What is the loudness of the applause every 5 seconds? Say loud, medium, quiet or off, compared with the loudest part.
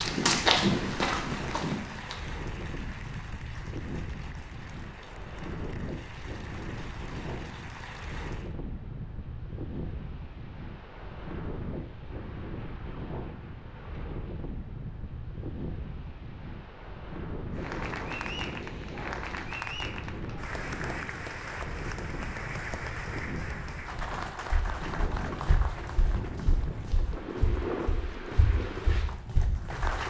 medium, medium, off, loud, loud, loud.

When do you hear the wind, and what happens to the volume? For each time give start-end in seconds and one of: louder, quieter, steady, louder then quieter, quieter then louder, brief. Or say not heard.
0.0-30.0 steady.